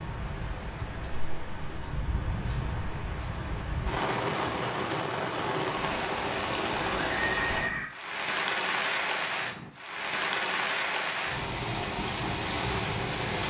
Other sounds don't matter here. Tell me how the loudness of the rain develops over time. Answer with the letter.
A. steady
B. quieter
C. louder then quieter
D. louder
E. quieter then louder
D.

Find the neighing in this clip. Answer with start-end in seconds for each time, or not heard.
6.8-7.9.